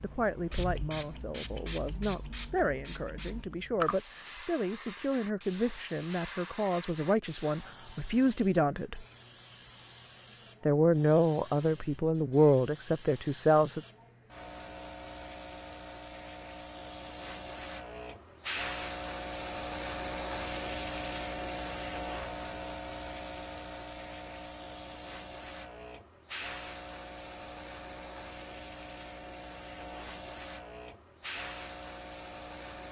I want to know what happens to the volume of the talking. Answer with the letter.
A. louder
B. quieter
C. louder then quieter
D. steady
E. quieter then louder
A.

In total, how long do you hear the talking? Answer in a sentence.
The talking can be heard for 12 seconds in total.